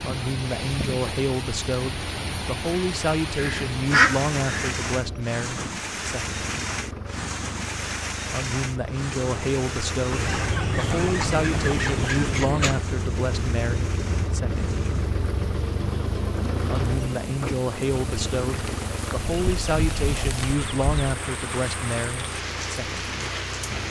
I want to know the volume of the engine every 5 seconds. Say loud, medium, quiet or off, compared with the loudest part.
medium, medium, loud, loud, medium.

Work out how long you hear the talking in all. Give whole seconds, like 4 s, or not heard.
20 s.